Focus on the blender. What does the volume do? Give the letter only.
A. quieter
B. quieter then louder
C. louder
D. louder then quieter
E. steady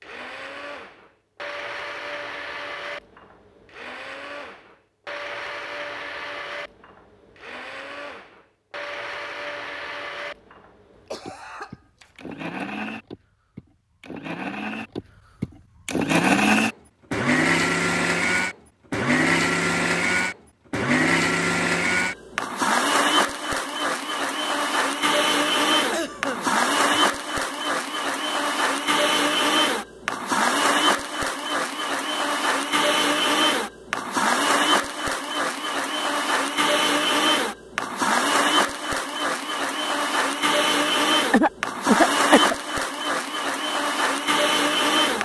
C.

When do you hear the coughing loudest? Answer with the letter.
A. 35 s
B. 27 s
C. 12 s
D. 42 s
D.